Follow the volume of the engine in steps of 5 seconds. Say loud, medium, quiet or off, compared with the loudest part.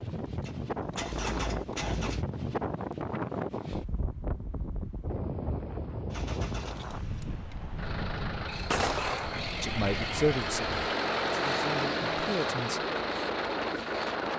medium, medium, loud.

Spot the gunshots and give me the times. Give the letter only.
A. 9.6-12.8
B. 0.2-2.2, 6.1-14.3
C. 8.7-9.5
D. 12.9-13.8
C.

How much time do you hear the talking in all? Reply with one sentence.
You can hear the talking for 3 seconds altogether.